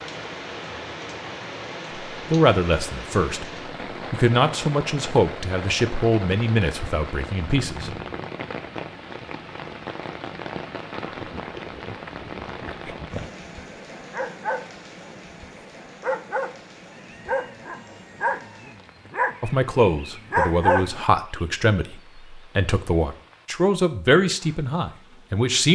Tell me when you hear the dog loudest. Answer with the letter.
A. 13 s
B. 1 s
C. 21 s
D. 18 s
C.